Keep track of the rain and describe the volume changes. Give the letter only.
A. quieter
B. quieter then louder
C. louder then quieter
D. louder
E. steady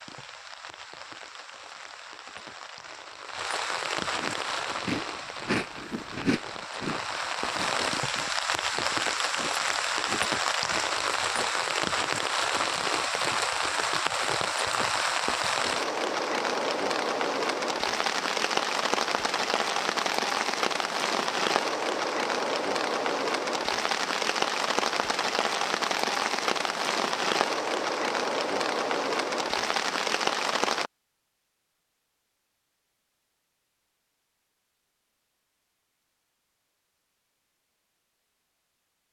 D.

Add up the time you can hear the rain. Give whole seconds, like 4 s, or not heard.
31 s.